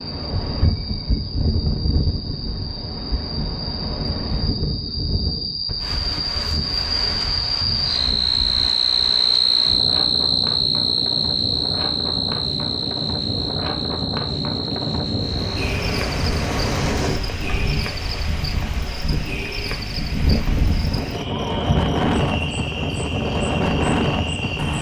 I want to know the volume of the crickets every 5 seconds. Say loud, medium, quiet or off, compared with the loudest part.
quiet, loud, loud, medium, medium.